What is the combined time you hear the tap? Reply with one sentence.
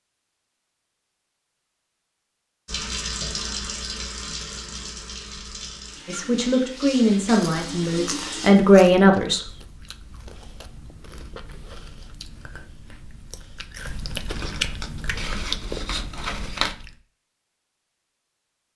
You can hear the tap for 6 seconds altogether.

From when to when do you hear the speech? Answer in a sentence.
You can hear the speech from 6.0 to 9.5 s.